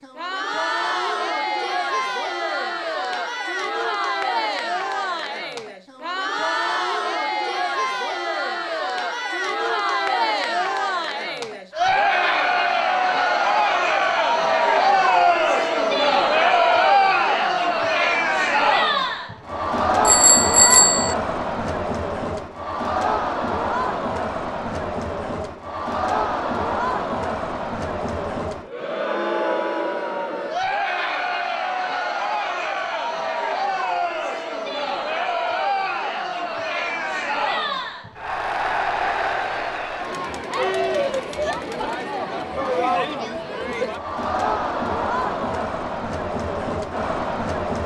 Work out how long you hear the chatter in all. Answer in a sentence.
The chatter can be heard for 48 seconds in total.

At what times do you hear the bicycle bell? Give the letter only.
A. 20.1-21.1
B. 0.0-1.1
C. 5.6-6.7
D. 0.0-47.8
A.